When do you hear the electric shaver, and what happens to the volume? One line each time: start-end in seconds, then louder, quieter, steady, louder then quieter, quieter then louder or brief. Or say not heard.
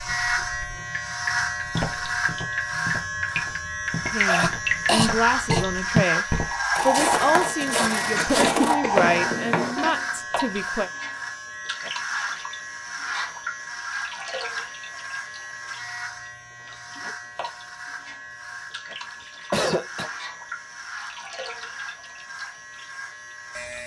0.0-23.8 quieter.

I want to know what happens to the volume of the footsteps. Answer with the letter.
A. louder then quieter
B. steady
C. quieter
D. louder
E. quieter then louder
D.